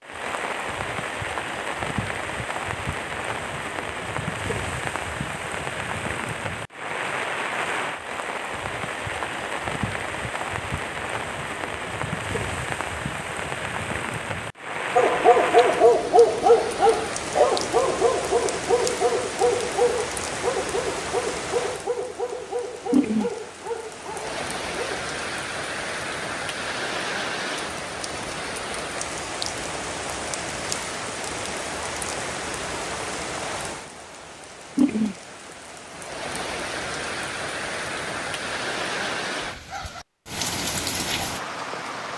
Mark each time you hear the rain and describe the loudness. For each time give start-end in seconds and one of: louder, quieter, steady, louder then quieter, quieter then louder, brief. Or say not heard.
0.0-42.1 steady.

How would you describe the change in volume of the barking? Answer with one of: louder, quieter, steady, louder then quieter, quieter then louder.
quieter.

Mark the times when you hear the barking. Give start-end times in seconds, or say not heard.
14.9-25.0.